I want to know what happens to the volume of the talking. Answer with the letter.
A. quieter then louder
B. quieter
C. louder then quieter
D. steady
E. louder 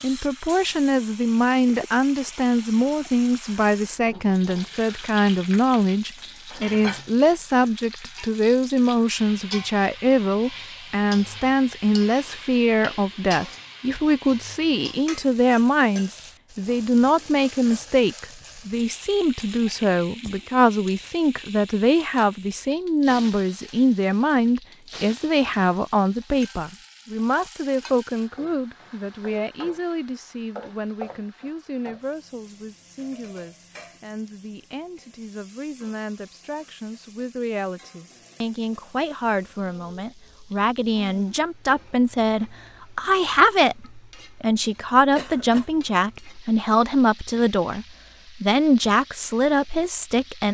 A.